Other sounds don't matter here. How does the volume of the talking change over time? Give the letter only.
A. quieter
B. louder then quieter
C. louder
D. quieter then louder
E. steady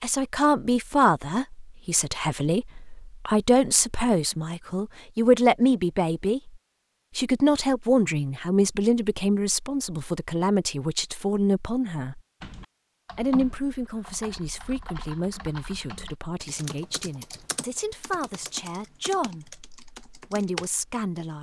A.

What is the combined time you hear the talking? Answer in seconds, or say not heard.
20 s.